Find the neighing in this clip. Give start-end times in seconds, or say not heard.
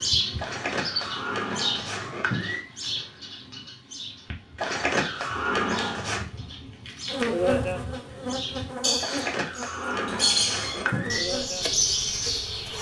0.3-2.6, 4.5-6.2, 9.0-11.2.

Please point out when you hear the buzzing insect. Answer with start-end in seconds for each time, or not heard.
7.1-12.7.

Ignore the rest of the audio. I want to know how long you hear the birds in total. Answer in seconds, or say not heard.
13 s.